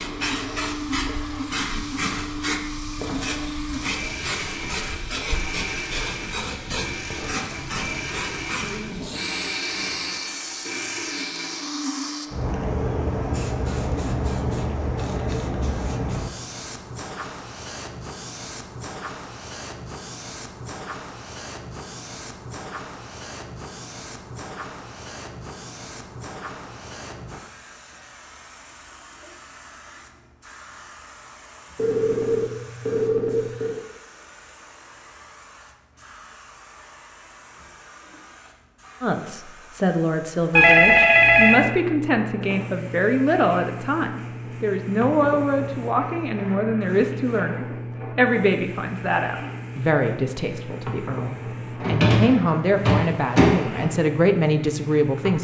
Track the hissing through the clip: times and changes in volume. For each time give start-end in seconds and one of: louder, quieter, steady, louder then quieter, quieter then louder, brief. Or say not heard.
0.0-55.3 quieter then louder.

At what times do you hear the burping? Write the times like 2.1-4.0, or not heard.
not heard.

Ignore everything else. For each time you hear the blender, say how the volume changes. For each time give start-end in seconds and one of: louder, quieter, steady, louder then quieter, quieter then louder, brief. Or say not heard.
0.0-12.3 steady.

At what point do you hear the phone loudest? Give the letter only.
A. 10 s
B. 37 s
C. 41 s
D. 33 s
C.